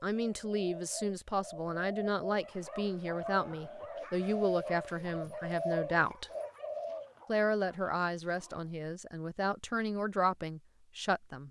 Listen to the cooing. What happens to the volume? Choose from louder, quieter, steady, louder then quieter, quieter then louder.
louder.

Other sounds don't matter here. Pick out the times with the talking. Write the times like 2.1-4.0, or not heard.
0.0-6.3, 7.2-11.4.